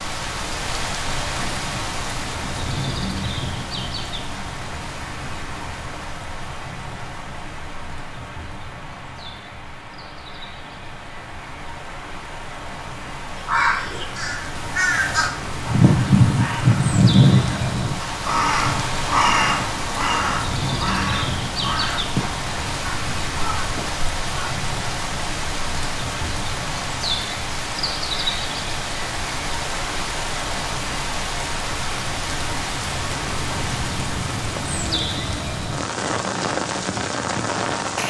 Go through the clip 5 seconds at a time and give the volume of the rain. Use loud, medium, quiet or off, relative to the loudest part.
loud, medium, medium, loud, loud, loud, loud, loud.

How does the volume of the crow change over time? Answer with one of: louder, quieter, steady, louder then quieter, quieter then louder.
louder then quieter.